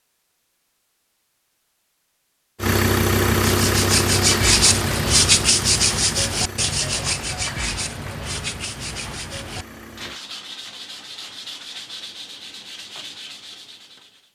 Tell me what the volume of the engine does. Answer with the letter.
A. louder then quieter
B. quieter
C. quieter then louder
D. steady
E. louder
B.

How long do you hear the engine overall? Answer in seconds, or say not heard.
8 s.